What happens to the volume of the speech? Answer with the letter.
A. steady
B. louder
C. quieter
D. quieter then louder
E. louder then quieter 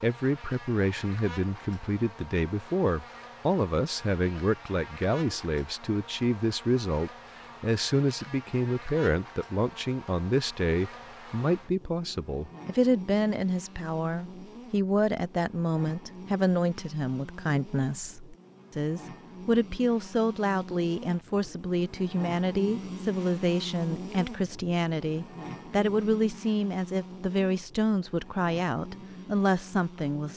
A.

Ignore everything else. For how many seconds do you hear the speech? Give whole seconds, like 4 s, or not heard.
30 s.